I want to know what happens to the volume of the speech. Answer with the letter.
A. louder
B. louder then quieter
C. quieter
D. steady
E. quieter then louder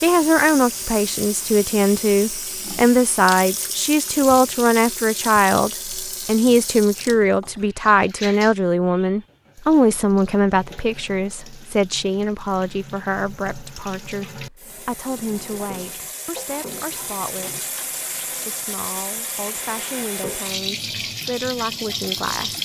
C.